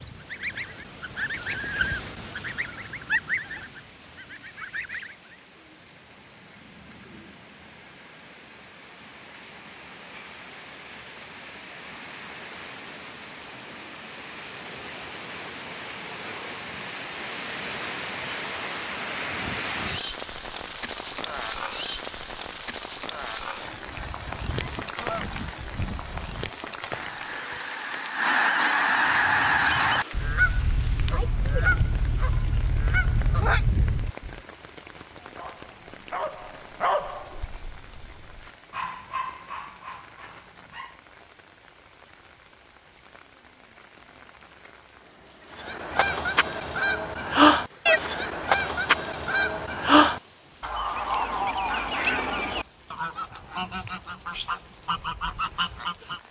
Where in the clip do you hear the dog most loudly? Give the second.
37 s.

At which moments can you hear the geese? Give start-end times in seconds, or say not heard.
0.0-5.3, 23.8-34.4, 45.5-56.2.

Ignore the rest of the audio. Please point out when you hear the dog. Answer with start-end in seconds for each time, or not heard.
35.4-41.0.